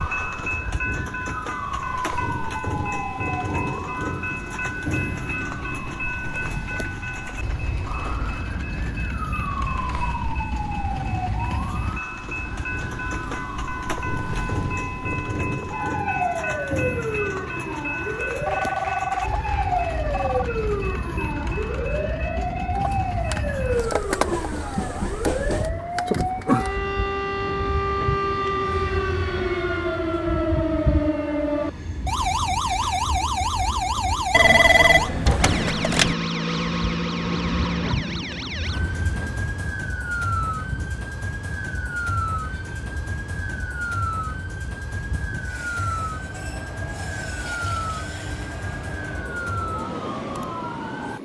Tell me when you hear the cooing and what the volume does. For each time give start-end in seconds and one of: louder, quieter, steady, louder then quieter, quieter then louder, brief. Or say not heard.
not heard.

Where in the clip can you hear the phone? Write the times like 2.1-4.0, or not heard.
18.4-20.4, 34.3-36.1.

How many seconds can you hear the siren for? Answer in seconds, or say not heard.
51 s.